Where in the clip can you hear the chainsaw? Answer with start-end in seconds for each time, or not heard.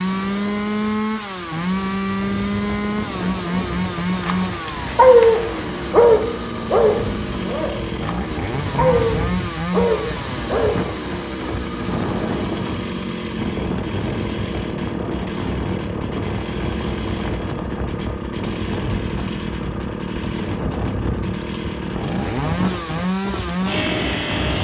0.0-24.5.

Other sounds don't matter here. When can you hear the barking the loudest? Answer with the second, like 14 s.
5 s.